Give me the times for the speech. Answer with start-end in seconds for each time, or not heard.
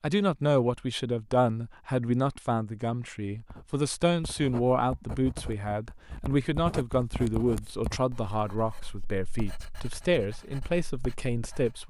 0.0-11.8.